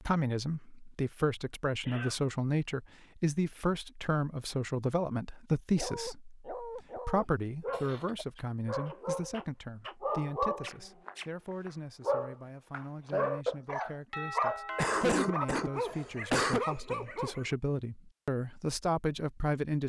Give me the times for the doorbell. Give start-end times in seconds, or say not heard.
14.1-15.8.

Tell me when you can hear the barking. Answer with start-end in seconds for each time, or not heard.
5.8-17.6.